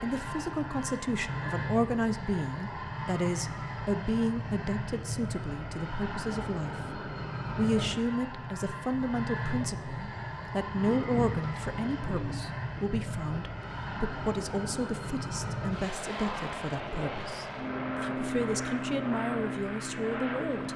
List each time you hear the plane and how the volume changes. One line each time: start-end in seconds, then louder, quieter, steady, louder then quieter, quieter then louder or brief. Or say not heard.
0.0-20.7 steady.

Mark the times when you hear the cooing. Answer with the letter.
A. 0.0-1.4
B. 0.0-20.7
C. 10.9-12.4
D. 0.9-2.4
C.